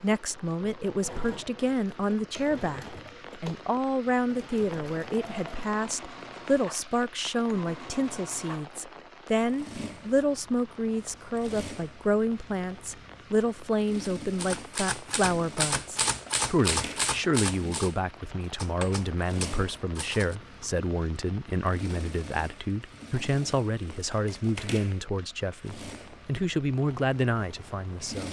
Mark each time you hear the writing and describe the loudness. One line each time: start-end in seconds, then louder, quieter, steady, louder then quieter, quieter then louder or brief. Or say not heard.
not heard.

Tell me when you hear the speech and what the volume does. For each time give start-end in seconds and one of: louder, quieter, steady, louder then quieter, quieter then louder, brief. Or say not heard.
0.0-28.2 steady.